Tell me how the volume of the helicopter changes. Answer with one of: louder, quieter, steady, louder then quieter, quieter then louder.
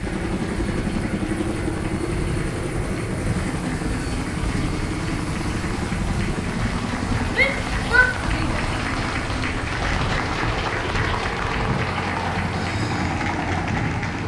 steady.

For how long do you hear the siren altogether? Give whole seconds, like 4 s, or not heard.
not heard.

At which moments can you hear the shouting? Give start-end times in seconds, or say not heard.
7.3-8.6.